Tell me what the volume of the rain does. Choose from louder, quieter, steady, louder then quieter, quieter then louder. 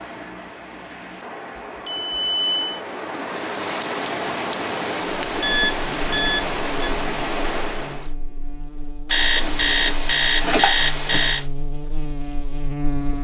louder.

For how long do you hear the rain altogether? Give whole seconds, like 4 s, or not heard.
8 s.